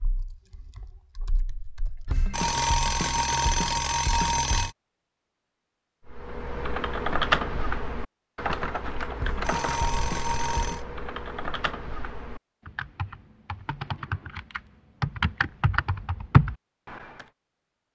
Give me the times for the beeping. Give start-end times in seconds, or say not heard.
2.0-4.7, 9.2-10.8.